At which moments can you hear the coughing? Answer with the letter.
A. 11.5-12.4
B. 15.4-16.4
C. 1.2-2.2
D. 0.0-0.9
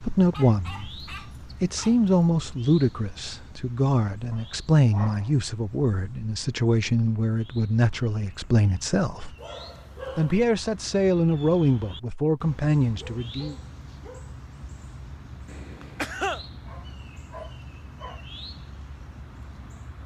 B.